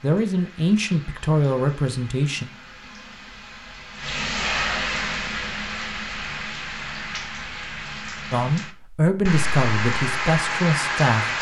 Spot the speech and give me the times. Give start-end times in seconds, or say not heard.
0.0-2.5, 8.3-11.3.